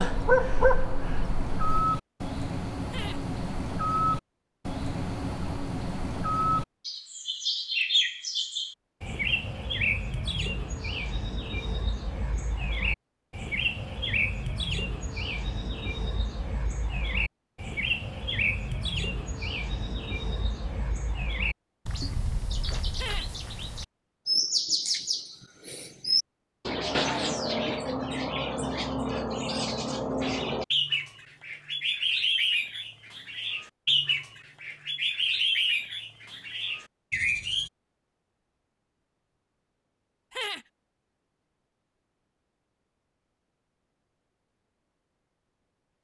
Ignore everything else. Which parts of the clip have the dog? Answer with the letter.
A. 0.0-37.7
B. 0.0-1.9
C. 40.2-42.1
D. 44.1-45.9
B.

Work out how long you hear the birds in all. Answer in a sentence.
The birds can be heard for 38 seconds in total.